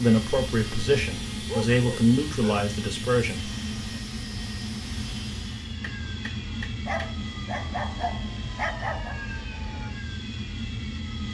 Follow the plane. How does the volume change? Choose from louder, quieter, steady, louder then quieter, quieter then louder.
steady.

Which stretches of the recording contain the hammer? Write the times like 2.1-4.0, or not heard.
5.8-7.2.